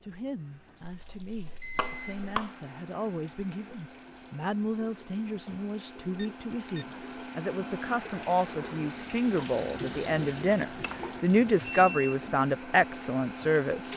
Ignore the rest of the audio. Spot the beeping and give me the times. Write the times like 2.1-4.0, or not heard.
0.9-2.2, 6.2-7.0, 11.6-12.2.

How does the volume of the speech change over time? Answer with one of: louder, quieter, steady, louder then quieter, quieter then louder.
louder.